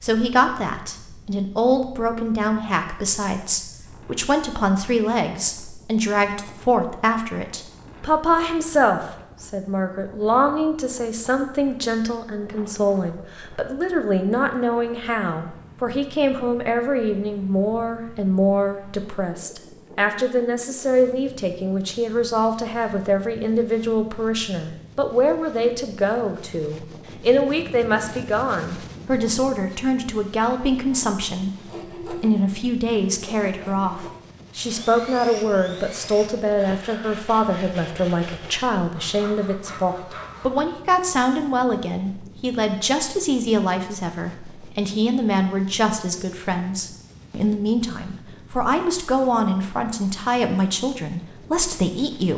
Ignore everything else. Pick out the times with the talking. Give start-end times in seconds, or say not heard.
0.0-52.3.